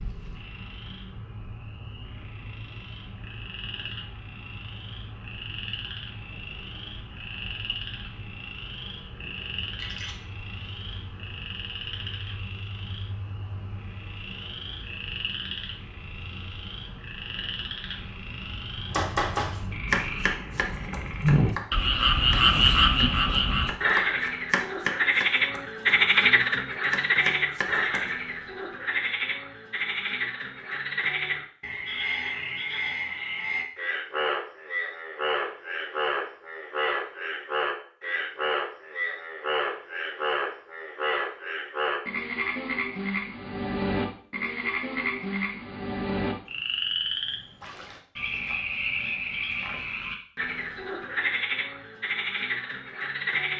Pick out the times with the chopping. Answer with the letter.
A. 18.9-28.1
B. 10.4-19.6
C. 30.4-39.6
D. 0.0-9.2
A.